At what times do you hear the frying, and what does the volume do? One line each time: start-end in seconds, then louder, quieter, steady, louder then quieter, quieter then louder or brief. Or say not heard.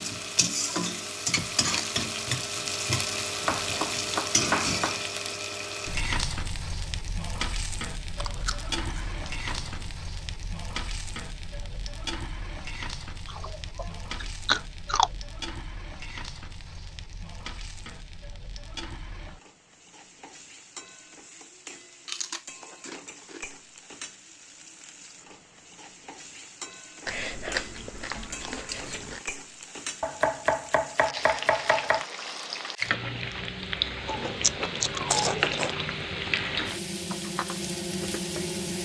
0.0-38.7 quieter then louder.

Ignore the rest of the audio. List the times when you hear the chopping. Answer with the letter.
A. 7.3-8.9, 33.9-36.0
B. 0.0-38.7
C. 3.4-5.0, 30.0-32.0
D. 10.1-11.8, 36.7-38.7
C.